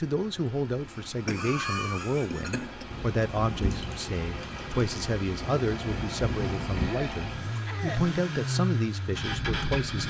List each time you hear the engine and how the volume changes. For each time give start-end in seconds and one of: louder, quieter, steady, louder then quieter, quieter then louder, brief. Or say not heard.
0.0-10.0 louder.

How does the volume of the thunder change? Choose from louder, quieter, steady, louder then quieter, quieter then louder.
quieter then louder.